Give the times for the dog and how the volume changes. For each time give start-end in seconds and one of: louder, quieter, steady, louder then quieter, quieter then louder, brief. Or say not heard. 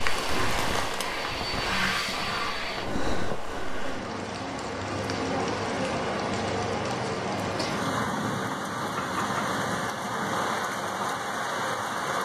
not heard.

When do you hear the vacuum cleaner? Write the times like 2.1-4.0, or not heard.
0.1-2.9.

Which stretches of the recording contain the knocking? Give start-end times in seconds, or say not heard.
8.9-9.6.